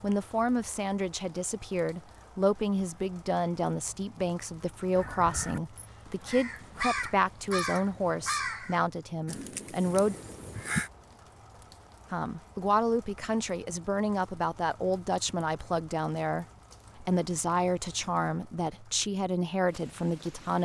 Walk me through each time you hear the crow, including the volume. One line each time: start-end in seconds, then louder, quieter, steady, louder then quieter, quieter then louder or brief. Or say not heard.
5.0-10.9 louder then quieter.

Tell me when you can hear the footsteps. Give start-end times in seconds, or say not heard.
not heard.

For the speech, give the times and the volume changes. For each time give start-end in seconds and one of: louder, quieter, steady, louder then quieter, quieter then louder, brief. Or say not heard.
0.0-10.2 steady
12.1-20.5 steady.